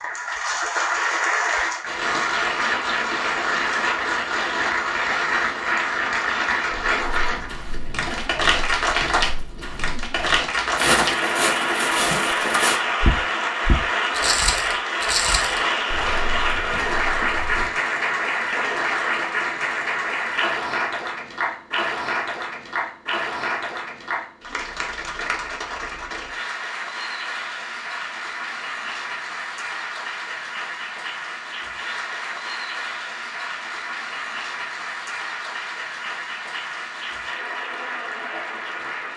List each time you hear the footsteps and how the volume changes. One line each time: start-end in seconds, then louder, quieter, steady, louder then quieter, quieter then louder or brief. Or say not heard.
6.7-17.7 louder then quieter.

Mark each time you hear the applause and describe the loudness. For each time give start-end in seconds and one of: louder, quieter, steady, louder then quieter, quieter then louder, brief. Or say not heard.
0.0-39.1 quieter.